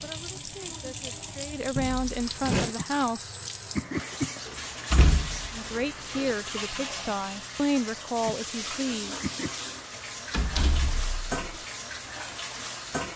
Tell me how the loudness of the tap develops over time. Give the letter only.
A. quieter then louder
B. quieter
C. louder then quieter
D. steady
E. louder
D.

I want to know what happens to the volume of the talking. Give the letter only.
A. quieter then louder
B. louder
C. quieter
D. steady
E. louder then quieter
B.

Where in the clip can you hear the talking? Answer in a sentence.
You can hear the talking from 0.0 to 3.4 s and from 5.5 to 9.2 s.